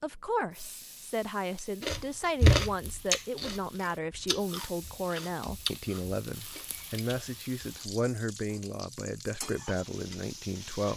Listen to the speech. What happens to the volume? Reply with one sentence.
The volume of the speech stays about the same.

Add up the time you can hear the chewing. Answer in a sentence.
The chewing can be heard for 6 seconds in total.